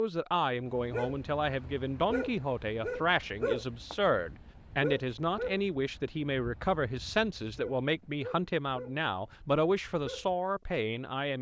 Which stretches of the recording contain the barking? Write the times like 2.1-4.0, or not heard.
0.7-10.3.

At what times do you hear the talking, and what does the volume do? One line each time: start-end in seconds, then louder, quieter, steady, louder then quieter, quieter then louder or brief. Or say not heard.
0.0-11.3 steady.